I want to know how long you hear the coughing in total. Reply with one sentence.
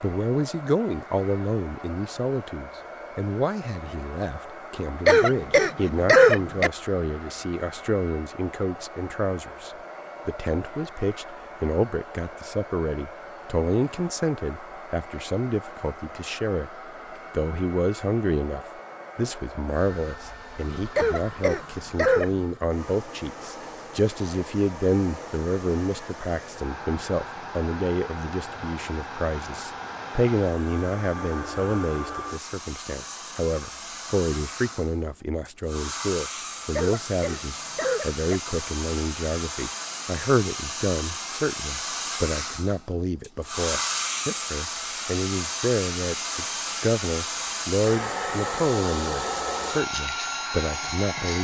The coughing can be heard for 5 seconds in total.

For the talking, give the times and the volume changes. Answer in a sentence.
You can hear the talking from 0.0 to 51.3 s, at a steady volume.